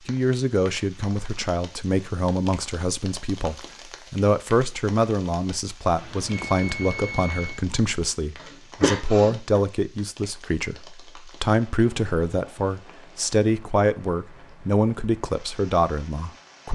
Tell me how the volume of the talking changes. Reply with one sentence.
The loudness of the talking stays about the same.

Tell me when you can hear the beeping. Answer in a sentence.
The beeping can be heard from 6.0 to 7.7 s.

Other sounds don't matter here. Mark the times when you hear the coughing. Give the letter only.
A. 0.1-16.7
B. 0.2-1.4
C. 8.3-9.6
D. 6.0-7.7
C.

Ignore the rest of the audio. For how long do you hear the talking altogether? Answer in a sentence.
You can hear the talking for 17 seconds altogether.